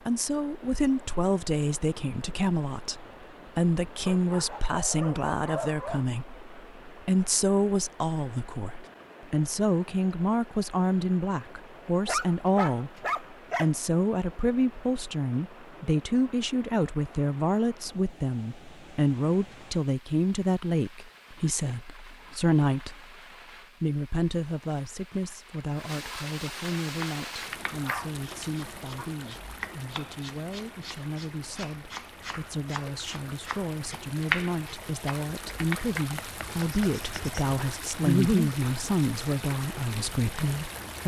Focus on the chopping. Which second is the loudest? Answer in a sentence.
The loudest moment of the chopping is at 34 seconds.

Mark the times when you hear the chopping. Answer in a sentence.
The chopping can be heard from 26.9 to 37.4 s.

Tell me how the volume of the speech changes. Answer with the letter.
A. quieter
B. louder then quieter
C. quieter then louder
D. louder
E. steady
C.